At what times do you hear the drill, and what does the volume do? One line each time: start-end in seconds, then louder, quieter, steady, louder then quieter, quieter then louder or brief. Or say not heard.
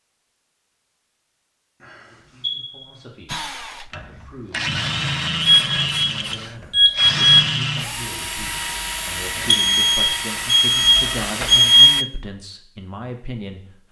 3.2-12.1 steady.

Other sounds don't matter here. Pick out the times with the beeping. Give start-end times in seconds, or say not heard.
2.4-2.9, 5.4-7.4, 9.4-11.9.